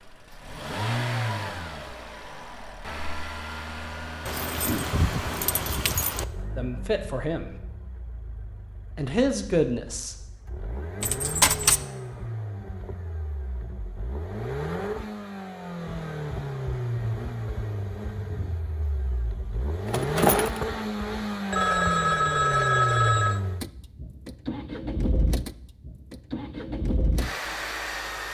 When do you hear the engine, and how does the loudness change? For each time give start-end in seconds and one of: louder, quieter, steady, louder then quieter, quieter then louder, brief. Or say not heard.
0.0-28.2 quieter then louder.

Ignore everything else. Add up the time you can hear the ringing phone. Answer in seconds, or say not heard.
2 s.